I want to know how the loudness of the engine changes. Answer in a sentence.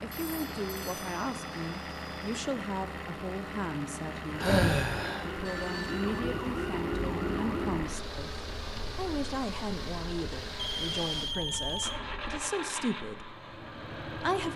The loudness of the engine stays about the same.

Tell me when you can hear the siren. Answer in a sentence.
You can hear the siren from 4.3 to 12.4 s.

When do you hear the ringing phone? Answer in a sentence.
You can hear the ringing phone from 0.1 to 2.5 s, from 5.5 to 6.2 s and from 10.6 to 12.0 s.